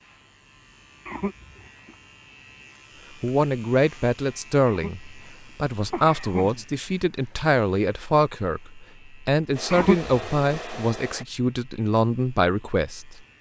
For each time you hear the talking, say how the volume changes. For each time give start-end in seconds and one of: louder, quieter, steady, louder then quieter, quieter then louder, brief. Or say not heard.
3.2-13.2 steady.